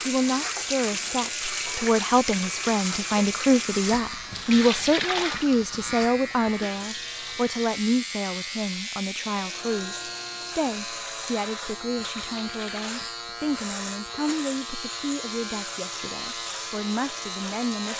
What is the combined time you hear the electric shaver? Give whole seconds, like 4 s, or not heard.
18 s.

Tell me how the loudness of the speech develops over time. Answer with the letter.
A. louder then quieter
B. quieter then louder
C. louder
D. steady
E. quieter
E.